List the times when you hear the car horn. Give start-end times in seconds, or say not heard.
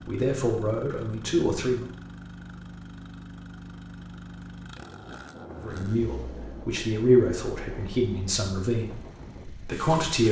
not heard.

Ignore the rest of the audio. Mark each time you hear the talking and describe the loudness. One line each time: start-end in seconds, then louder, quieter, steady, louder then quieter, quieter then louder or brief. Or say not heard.
0.1-1.9 brief
5.6-10.2 louder then quieter.